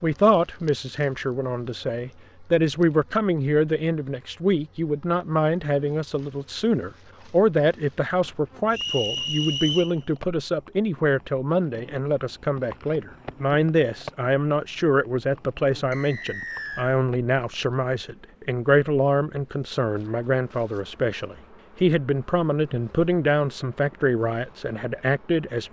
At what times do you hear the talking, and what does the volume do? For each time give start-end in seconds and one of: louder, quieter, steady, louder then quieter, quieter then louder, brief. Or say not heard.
0.0-25.6 steady.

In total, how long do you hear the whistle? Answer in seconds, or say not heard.
2 s.